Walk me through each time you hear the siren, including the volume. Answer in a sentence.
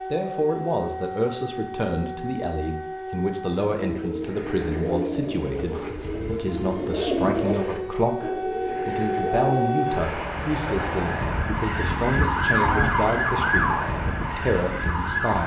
The siren can be heard from 0.0 to 15.4 s, getting louder.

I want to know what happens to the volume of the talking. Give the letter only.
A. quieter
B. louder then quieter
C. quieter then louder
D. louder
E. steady
E.